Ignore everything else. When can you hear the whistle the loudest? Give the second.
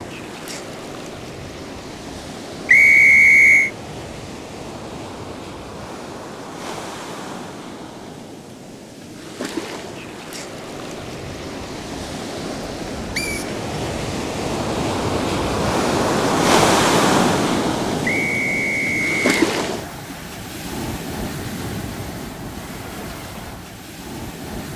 3 s.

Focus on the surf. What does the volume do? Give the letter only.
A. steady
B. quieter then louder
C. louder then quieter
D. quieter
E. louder
C.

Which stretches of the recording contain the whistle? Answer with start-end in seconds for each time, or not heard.
2.6-3.7, 13.2-13.6, 18.1-19.2.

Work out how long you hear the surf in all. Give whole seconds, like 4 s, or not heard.
25 s.